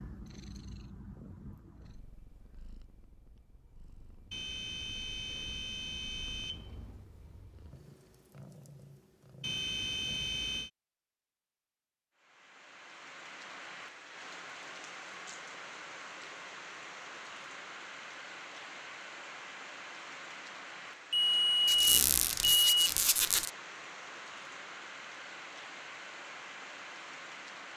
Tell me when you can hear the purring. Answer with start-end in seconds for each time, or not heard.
0.0-10.4.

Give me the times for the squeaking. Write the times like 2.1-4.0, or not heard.
21.6-23.5.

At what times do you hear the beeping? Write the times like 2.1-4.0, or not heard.
4.3-7.0, 9.4-10.7, 21.1-22.9.